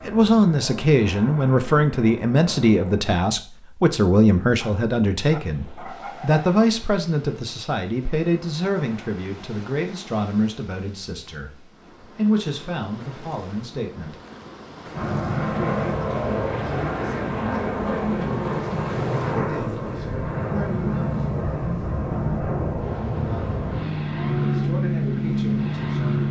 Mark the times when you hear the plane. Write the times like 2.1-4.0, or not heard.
0.0-3.2, 14.9-26.2.